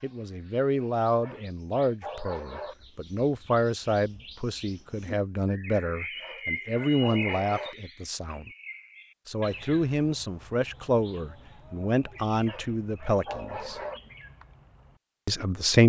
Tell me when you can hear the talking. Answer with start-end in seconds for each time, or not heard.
0.0-8.5, 9.2-13.8, 15.2-15.8.